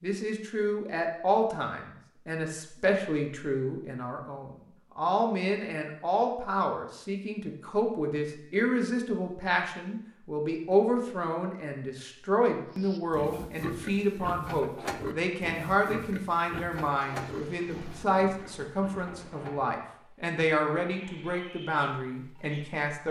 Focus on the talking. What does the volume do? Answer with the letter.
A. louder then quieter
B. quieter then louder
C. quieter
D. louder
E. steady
E.